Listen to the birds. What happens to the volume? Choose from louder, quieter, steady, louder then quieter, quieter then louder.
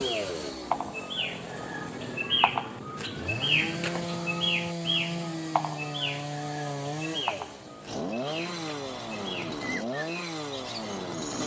quieter.